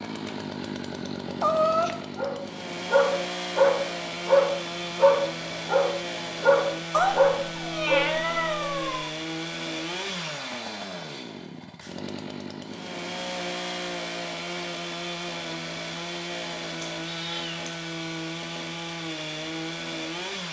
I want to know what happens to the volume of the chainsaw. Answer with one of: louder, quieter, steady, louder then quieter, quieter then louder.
steady.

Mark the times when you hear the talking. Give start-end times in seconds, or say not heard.
not heard.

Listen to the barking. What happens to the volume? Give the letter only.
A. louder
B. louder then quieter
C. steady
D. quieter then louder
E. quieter
C.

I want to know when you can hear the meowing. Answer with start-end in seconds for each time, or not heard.
1.4-2.0, 6.9-9.1, 17.0-17.6.